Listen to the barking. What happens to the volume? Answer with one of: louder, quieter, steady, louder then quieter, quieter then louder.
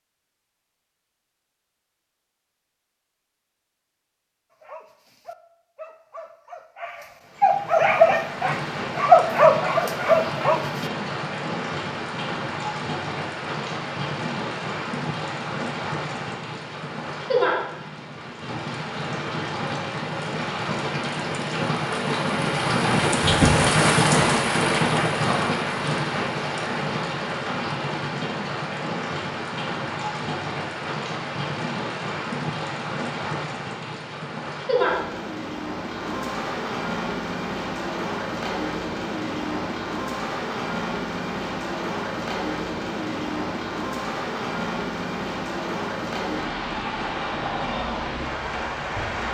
louder.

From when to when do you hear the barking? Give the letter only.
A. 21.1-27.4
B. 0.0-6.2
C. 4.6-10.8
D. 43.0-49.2
C.